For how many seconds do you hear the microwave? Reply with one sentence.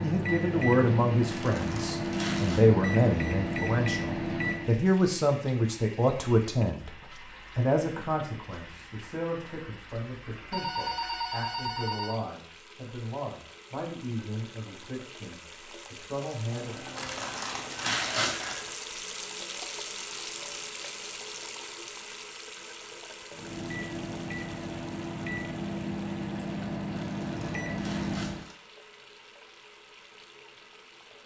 The microwave can be heard for 10 seconds in total.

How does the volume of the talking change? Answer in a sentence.
The volume of the talking goes down.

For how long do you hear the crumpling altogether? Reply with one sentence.
You can hear the crumpling for 5 seconds altogether.